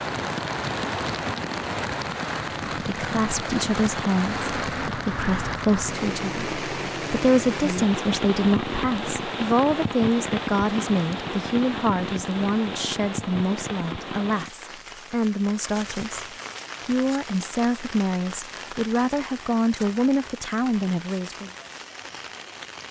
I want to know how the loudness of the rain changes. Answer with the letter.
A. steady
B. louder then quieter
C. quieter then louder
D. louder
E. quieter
E.